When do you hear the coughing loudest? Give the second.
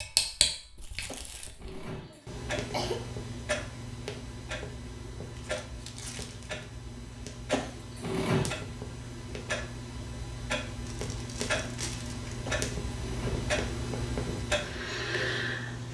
8 s.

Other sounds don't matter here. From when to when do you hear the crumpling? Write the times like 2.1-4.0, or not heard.
0.8-1.6, 5.3-6.7, 10.8-12.3.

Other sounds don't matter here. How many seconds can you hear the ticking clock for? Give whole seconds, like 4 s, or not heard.
16 s.